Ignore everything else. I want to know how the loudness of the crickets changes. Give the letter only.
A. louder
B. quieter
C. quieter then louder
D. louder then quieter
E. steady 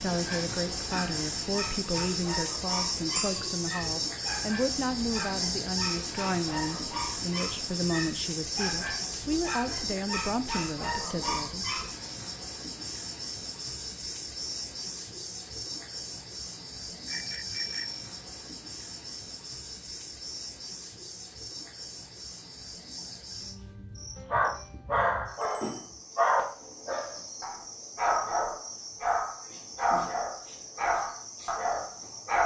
B.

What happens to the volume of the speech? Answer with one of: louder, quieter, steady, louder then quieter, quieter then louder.
steady.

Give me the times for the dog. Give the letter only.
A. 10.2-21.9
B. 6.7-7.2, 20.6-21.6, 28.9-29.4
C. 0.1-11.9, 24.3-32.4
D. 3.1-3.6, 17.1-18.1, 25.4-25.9
C.